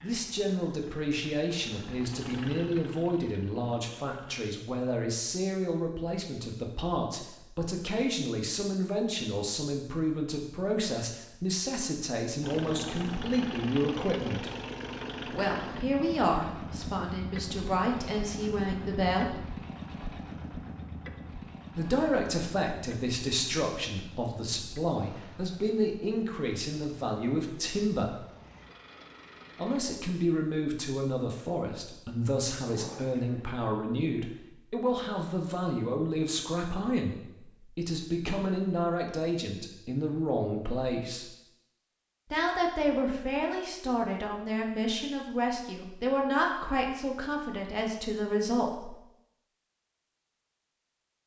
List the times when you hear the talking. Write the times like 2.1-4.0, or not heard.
0.0-14.5, 15.2-19.4, 21.8-28.2, 29.6-41.2, 42.3-49.0.